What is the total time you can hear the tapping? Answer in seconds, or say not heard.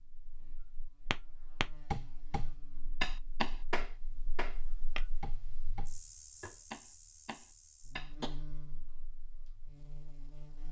7 s.